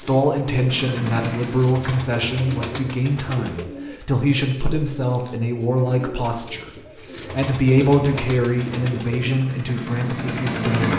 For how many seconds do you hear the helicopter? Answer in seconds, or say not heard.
4 s.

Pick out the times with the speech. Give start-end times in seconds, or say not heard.
0.0-10.9.